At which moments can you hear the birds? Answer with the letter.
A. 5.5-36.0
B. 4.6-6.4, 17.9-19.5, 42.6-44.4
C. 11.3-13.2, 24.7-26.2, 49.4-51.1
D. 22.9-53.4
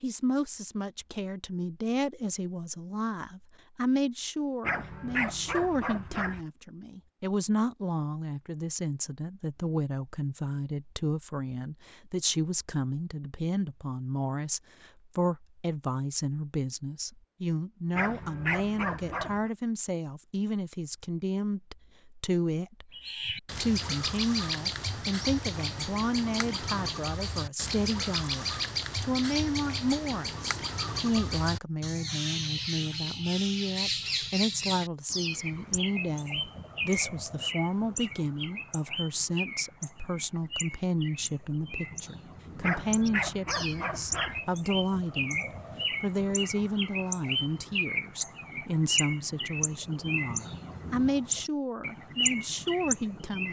D.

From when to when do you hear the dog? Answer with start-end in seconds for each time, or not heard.
4.6-6.4, 17.9-19.5, 42.6-44.4.